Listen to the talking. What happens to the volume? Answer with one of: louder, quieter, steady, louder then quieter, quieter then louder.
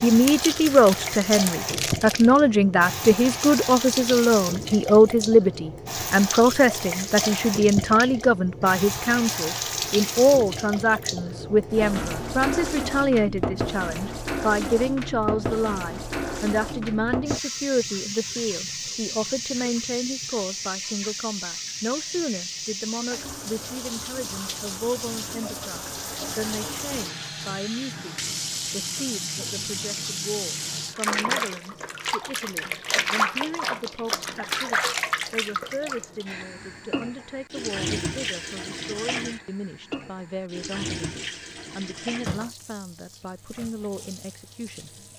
quieter.